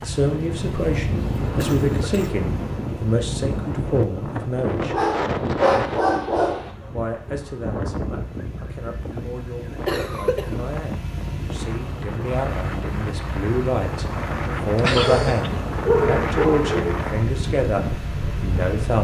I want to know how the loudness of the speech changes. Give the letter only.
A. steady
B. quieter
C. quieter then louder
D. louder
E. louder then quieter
C.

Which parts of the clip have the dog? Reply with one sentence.
You can hear the dog from 4.9 to 6.7 s and from 15.0 to 17.0 s.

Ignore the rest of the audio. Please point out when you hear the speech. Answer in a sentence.
You can hear the speech from 0.0 to 5.0 s and from 6.9 to 18.9 s.